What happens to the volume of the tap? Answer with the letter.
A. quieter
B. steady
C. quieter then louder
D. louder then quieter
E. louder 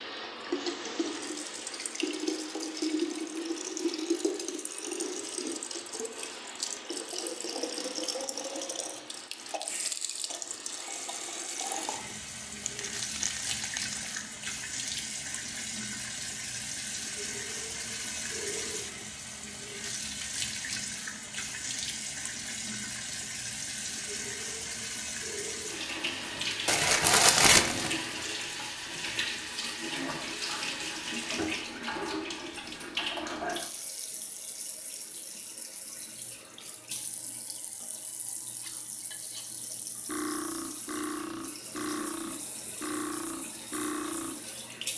A.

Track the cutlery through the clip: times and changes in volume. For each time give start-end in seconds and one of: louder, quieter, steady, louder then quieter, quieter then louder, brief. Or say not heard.
38.6-44.6 louder.